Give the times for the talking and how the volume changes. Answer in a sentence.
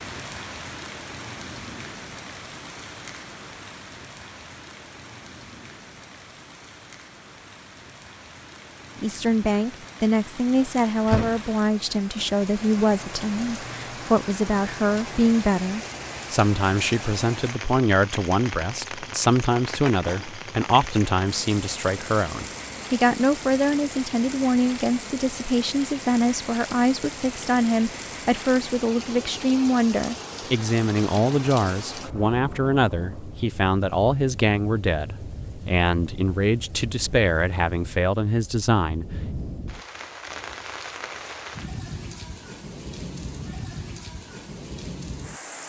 The talking can be heard from 8.9 to 39.1 s, at a steady volume.